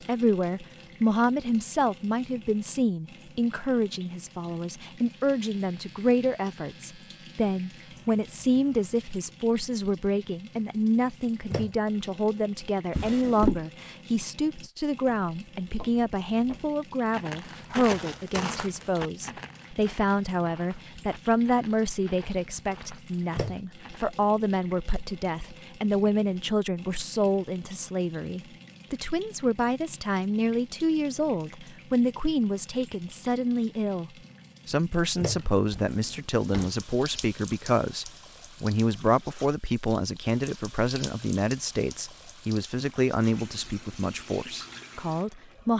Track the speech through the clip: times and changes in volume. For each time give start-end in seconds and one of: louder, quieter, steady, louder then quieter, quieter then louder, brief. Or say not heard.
0.1-45.7 steady.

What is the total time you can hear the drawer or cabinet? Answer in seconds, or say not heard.
2 s.